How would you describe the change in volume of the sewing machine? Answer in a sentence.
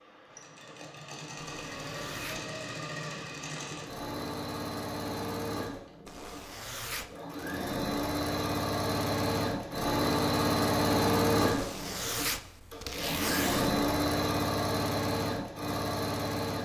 The volume of the sewing machine goes up.